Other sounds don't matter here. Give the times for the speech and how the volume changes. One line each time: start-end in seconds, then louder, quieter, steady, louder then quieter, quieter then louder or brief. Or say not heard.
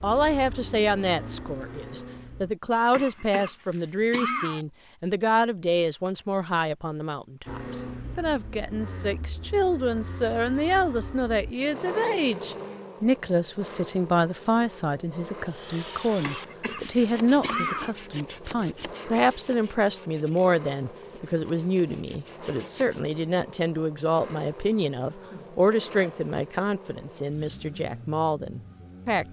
0.0-29.2 steady.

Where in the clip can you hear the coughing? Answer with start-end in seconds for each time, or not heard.
2.9-4.7, 16.2-17.9, 25.1-26.2.